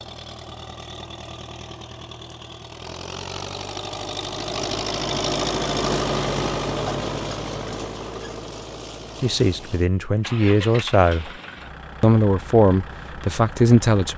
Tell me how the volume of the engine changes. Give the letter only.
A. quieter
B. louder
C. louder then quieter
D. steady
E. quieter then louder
C.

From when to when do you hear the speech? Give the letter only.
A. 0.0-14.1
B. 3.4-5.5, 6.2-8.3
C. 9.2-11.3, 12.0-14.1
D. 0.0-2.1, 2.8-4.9
C.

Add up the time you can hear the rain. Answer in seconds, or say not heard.
not heard.